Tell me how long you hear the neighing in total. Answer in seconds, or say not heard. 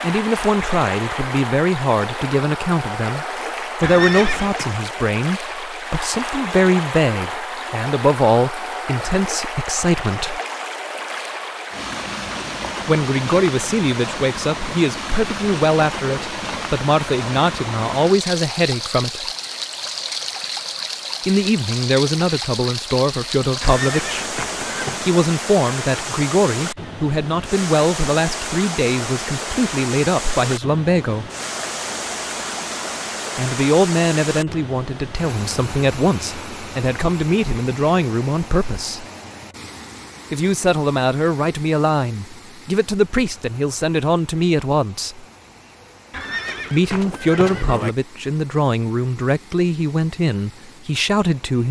4 s.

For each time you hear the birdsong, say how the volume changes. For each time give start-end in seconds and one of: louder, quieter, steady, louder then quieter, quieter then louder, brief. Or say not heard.
not heard.